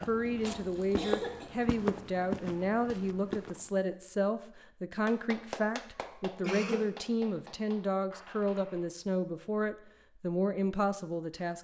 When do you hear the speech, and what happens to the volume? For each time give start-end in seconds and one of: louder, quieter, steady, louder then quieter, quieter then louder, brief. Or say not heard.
0.0-11.5 steady.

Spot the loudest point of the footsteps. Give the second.
2 s.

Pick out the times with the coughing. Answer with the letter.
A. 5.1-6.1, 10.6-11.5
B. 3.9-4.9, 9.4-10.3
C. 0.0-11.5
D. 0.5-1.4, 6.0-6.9
D.